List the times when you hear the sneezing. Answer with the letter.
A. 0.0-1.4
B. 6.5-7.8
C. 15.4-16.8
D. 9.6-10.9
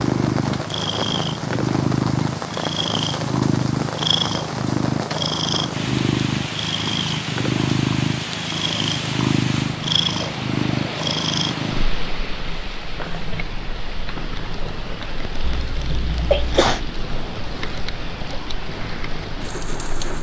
C.